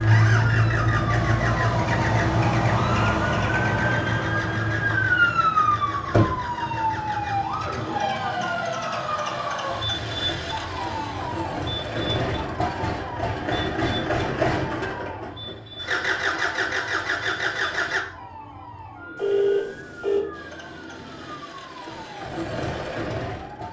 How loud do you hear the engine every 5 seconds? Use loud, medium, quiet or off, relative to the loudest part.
medium, medium, loud, loud, medium.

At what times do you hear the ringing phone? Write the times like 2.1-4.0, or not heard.
19.1-20.2.